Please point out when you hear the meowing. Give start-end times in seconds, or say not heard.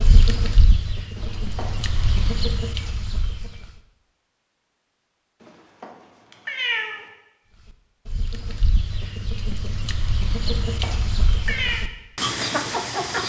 1.1-2.0, 5.4-7.0, 10.4-11.8.